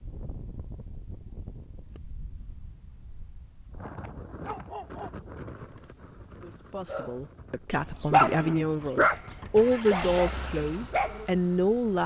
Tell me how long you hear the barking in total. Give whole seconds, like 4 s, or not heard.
6 s.